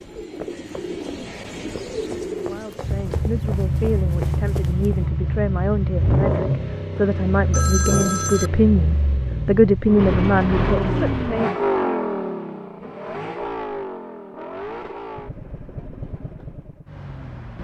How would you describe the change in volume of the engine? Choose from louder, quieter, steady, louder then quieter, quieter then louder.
quieter.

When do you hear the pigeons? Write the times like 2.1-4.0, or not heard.
0.0-3.2.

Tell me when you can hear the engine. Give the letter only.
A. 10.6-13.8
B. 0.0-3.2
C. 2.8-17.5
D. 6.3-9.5
C.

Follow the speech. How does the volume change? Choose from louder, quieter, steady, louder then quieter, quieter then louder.
louder.